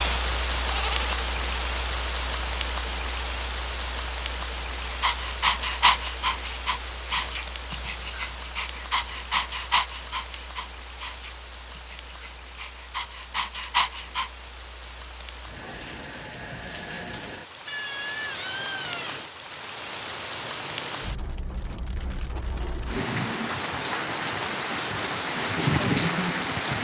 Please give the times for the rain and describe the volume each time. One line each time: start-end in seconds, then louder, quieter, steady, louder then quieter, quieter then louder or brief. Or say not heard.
0.0-26.7 quieter then louder.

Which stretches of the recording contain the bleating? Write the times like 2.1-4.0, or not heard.
0.7-1.2, 17.6-19.3.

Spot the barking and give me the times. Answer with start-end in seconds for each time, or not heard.
4.8-14.3.